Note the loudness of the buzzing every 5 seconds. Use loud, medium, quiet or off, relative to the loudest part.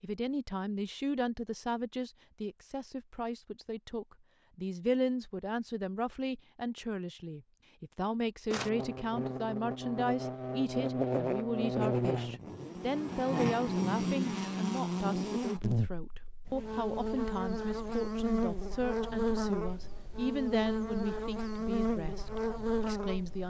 off, medium, loud, loud, loud.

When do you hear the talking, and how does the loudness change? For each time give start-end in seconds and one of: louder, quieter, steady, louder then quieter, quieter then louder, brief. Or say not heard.
0.0-23.4 steady.